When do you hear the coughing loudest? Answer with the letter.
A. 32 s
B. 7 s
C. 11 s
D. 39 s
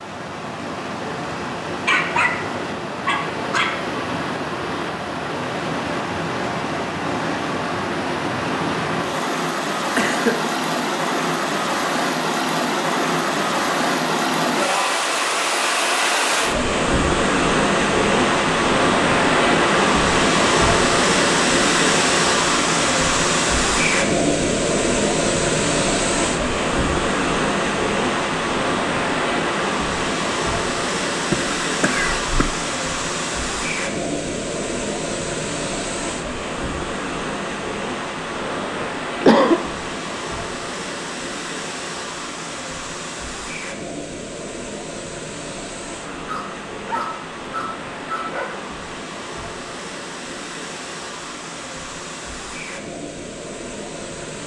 D.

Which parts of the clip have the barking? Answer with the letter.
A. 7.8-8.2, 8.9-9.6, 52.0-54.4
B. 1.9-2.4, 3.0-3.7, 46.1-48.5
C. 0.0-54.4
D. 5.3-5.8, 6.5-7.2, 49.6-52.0
B.